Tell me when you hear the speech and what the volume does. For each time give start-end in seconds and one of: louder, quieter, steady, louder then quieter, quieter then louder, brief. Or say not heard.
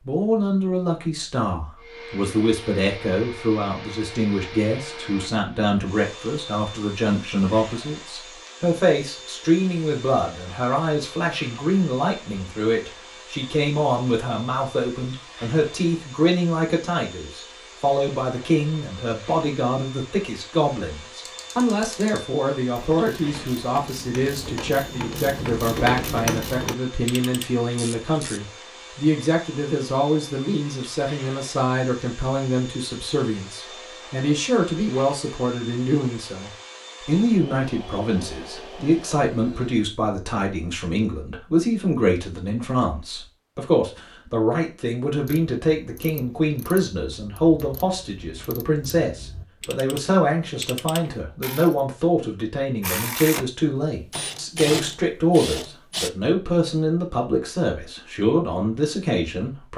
0.1-59.7 steady.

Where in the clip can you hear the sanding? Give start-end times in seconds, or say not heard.
not heard.